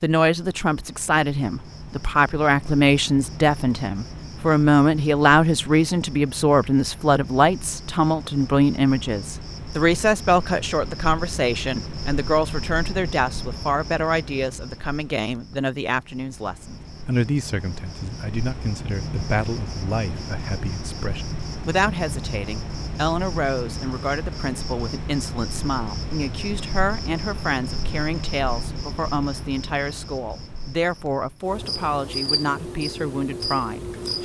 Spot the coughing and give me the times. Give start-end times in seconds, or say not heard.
not heard.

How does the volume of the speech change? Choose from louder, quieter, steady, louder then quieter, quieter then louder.
quieter.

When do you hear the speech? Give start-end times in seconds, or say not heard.
0.0-34.2.